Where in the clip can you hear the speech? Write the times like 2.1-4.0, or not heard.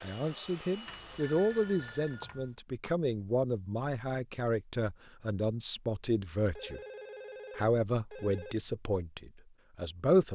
0.0-6.8, 7.5-10.3.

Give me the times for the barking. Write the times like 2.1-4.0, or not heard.
not heard.